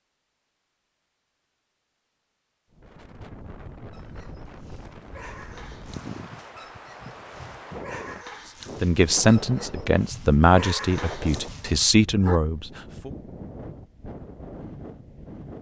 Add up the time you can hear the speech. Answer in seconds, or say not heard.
4 s.